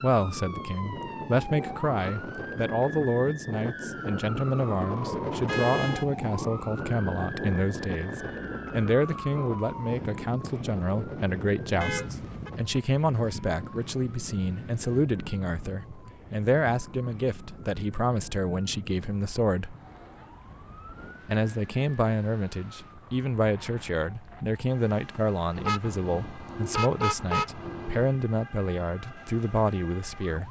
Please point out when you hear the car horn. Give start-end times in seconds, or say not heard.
5.5-6.0, 11.8-12.5, 25.6-28.1.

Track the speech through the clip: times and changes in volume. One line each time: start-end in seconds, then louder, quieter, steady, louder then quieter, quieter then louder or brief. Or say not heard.
0.0-19.8 steady
21.2-30.4 steady.